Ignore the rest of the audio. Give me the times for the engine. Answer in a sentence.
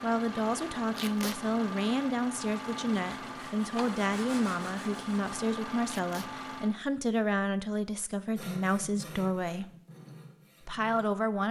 The engine can be heard from 0.0 to 6.8 s.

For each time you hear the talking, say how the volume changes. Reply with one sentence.
You can hear the talking from 0.0 to 9.7 s, at a steady volume; and briefly from 10.7 to 11.4 s.